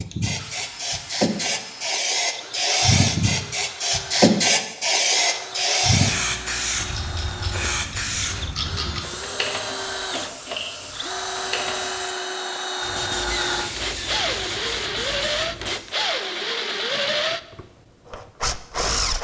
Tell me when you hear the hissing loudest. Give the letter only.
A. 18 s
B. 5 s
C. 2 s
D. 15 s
B.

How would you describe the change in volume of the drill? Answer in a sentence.
The volume of the drill goes up.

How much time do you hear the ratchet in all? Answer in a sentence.
The ratchet can be heard for 5 seconds in total.